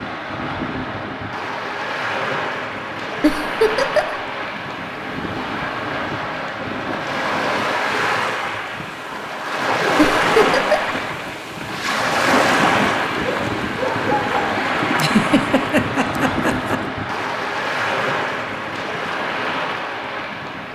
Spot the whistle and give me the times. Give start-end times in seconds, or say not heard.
not heard.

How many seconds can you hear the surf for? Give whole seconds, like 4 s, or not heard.
21 s.